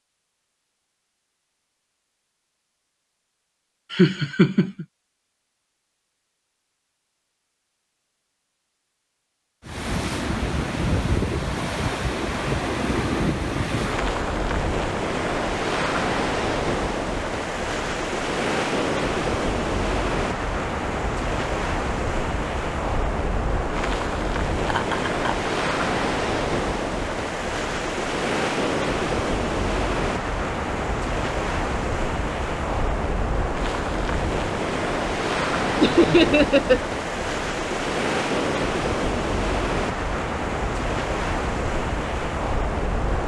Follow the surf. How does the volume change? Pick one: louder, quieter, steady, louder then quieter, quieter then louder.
steady.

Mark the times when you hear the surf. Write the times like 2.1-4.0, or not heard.
9.6-43.2.